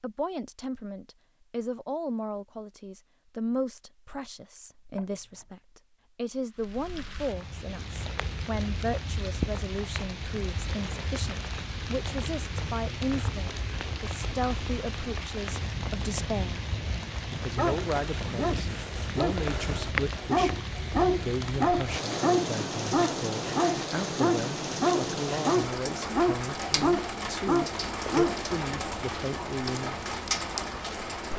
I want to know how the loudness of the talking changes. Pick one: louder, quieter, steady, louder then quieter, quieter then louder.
steady.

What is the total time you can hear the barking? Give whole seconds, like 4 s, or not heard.
11 s.